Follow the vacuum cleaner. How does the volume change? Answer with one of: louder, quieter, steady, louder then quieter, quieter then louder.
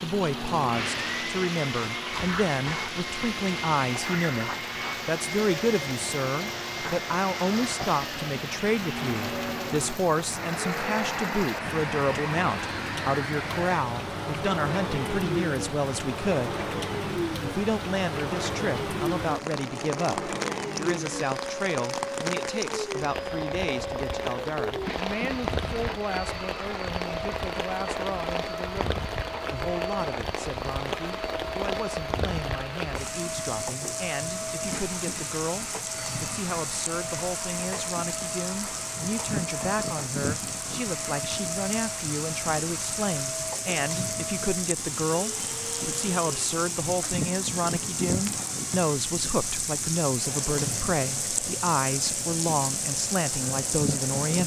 quieter.